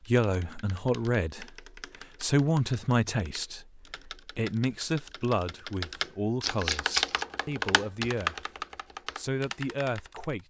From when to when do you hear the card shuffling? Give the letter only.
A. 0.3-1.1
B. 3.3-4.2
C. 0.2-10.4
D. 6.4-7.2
D.